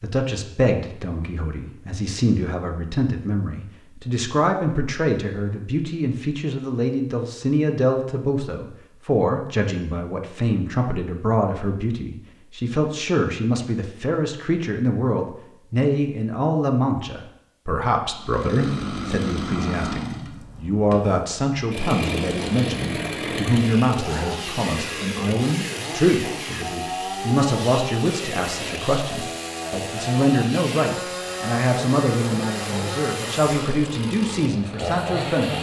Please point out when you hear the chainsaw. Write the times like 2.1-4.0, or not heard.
18.1-35.5.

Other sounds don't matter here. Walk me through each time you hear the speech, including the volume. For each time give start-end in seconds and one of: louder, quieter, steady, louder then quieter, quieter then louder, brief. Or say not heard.
0.0-35.5 steady.